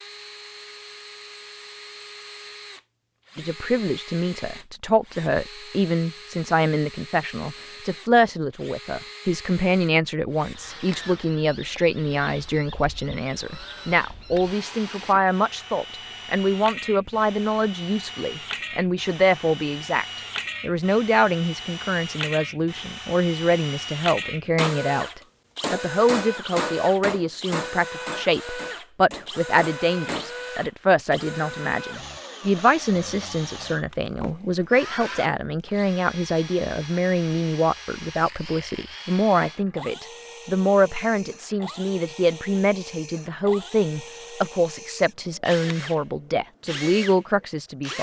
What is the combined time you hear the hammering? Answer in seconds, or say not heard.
6 s.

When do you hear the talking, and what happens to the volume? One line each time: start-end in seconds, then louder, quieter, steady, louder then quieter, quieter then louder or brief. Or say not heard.
3.4-47.9 steady.